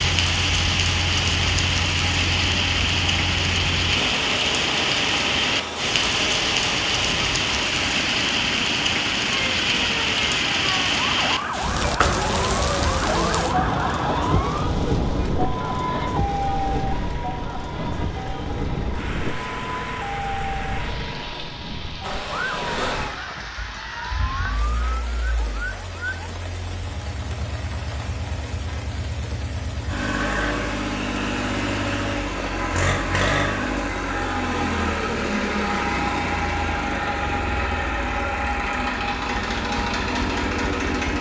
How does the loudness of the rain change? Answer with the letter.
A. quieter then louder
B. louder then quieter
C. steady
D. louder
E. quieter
E.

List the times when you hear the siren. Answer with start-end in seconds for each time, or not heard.
9.2-26.4.